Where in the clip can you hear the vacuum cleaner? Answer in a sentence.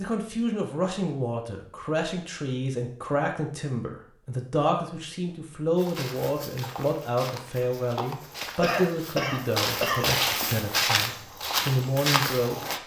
The vacuum cleaner can't be heard in this clip.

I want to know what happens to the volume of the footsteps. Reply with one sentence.
The volume of the footsteps goes up.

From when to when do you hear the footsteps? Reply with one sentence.
The footsteps can be heard from 5.8 to 12.8 s.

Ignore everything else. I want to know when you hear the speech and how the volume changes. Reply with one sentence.
The speech can be heard from 0.0 to 12.7 s, at a steady volume.